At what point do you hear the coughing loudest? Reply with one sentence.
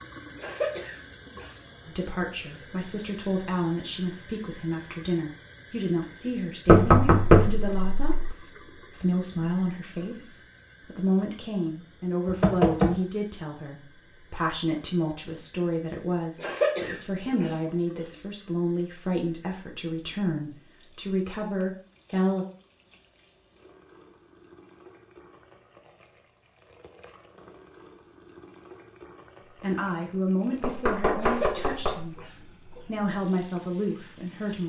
The volume of the coughing peaks at 17 seconds.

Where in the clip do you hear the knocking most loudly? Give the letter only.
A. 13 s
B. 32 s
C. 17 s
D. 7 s
D.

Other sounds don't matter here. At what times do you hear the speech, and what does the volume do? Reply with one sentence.
The speech can be heard from 1.9 to 22.4 s, at a steady volume; briefly from 29.6 to 32.2 s; and briefly from 32.9 to 34.6 s.